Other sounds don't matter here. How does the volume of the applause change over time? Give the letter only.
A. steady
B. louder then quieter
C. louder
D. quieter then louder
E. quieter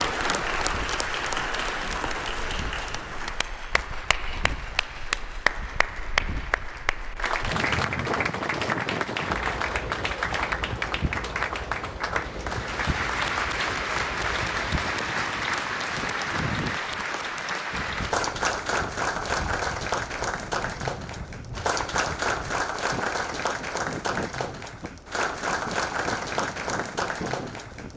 A.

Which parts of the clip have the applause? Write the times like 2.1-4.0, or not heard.
0.0-27.9.